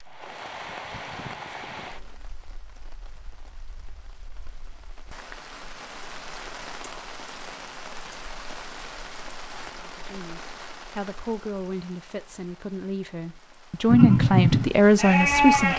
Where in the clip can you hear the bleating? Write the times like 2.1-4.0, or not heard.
13.8-15.7.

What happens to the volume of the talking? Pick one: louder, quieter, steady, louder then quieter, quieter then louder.
louder.